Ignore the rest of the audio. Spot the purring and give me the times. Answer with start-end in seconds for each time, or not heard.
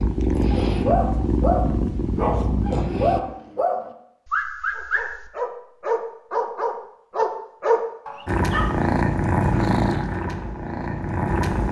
0.0-3.2, 8.2-11.6.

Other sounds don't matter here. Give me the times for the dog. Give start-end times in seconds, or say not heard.
0.5-8.8.